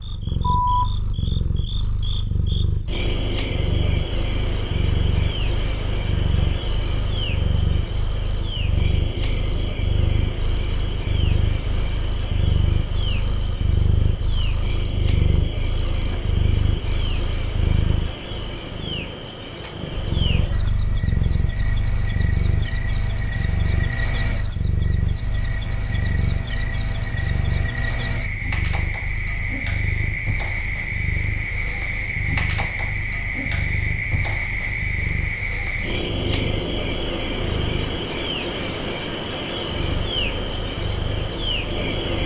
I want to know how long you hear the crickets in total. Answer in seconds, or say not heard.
42 s.